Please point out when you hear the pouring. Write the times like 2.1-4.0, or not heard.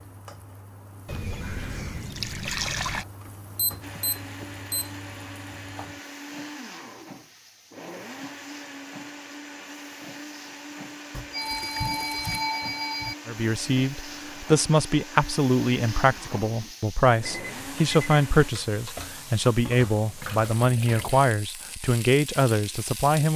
1.1-3.0, 11.4-12.4, 20.2-21.3.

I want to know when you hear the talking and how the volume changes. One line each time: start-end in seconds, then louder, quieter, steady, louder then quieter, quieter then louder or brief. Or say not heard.
13.2-23.3 steady.